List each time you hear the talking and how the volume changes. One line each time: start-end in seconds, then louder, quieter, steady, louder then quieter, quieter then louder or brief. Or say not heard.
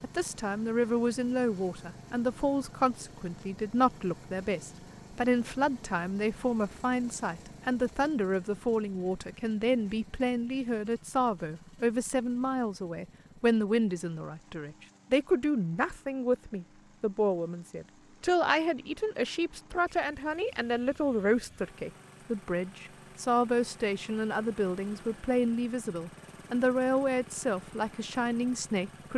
0.0-29.1 steady.